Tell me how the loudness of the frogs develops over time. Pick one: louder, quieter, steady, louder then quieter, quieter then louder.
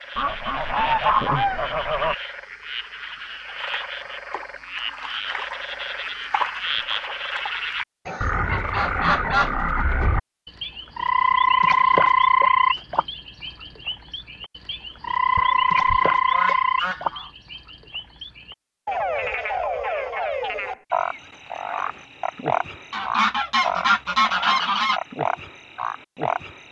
louder then quieter.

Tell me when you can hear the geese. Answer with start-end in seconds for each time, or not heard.
0.1-2.1, 8.1-9.6, 15.3-17.3, 22.9-25.0.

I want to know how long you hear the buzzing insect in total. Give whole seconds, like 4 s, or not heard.
not heard.